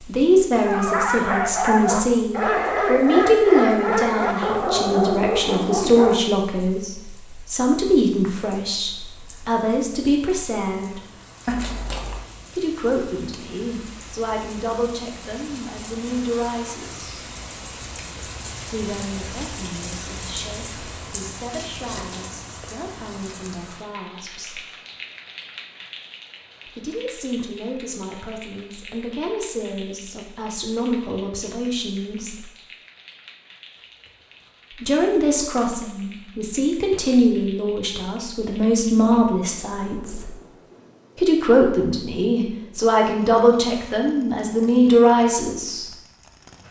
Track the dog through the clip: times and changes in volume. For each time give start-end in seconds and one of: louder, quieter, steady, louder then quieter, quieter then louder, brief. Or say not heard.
0.7-6.2 steady.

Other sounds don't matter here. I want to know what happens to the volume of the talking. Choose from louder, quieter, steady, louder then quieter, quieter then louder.
quieter then louder.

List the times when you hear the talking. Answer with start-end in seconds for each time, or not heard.
0.1-11.0, 12.5-17.2, 18.7-24.6, 26.6-32.5, 34.8-40.3, 41.1-45.9.